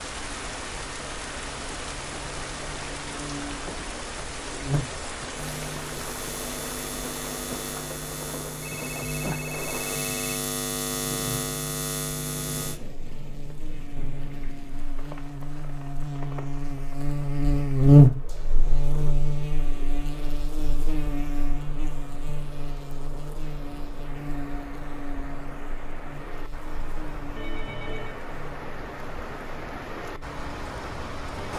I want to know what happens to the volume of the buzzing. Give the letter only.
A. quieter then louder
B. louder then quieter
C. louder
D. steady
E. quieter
B.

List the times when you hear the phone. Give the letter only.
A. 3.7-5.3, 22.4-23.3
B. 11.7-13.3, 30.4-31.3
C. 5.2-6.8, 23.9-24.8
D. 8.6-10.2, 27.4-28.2
D.